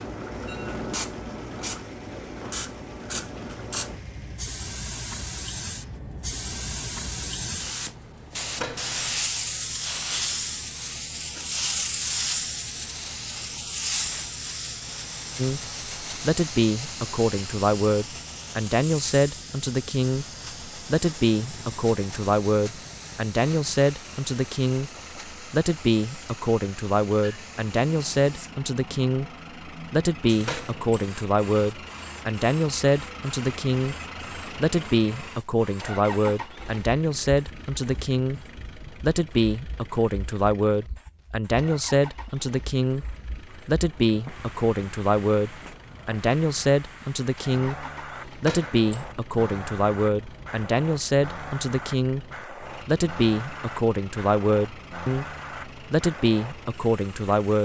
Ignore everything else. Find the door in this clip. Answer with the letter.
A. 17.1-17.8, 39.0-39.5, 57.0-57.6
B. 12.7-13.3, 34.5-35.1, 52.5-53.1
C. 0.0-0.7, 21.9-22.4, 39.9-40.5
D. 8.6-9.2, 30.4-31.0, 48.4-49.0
D.